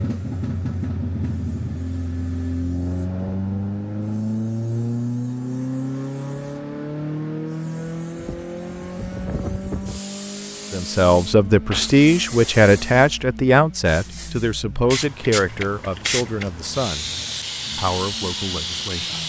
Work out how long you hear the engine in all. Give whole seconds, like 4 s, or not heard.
19 s.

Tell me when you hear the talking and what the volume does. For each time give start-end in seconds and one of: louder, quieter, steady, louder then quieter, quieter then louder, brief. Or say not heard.
10.7-17.1 quieter
17.8-19.2 brief.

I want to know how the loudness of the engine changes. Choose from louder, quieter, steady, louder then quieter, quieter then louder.
quieter.